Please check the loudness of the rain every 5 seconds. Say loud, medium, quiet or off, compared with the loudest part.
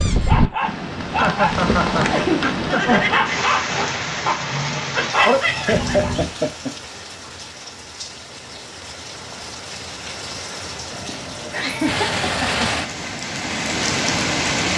loud, medium, loud.